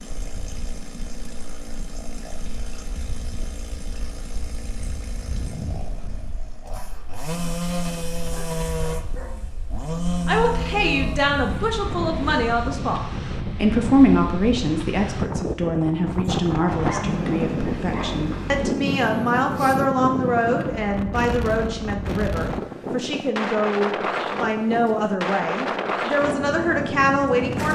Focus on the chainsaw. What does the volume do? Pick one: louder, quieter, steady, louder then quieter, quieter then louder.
louder.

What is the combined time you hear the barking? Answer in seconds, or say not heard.
3 s.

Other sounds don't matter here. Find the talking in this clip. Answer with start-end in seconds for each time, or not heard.
10.2-27.7.